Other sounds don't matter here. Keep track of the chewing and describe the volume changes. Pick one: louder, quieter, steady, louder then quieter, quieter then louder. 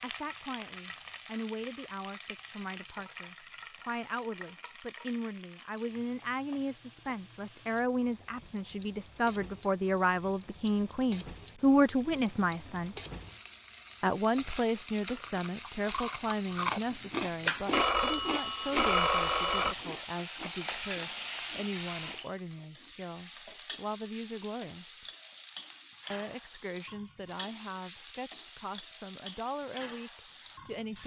quieter.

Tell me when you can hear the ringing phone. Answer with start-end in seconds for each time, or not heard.
17.7-19.8.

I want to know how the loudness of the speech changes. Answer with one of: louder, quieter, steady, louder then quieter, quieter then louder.
louder then quieter.